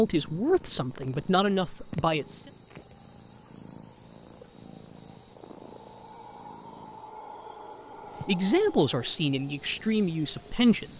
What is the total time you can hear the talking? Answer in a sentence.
You can hear the talking for 5 seconds altogether.